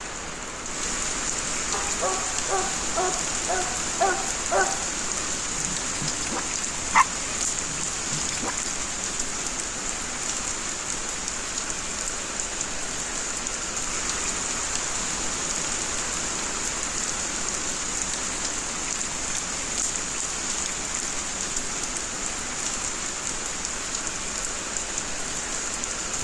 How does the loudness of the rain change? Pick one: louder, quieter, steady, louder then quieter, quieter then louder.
steady.